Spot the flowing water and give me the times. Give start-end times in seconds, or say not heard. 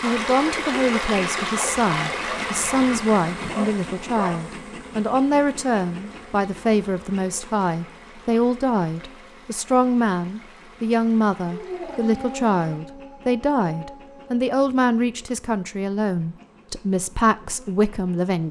0.0-12.8.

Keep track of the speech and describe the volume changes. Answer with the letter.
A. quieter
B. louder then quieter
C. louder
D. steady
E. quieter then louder
D.